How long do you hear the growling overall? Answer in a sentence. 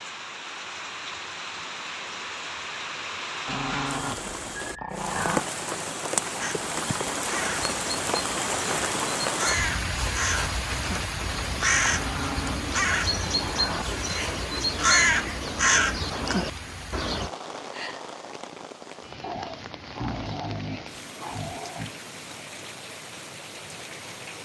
The growling can be heard for 7 seconds in total.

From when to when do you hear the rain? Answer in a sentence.
You can hear the rain from 0.0 to 24.3 s.